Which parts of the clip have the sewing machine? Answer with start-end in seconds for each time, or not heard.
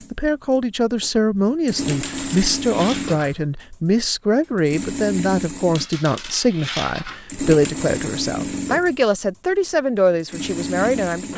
0.0-3.4, 4.5-11.3.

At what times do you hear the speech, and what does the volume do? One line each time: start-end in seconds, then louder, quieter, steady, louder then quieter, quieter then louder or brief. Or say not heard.
0.1-11.3 steady.